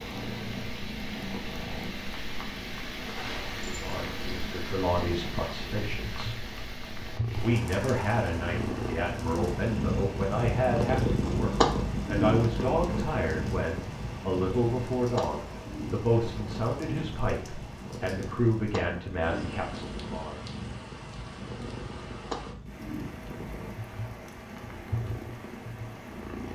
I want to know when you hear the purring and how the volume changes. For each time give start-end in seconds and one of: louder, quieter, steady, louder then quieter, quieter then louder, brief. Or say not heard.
0.0-26.5 louder then quieter.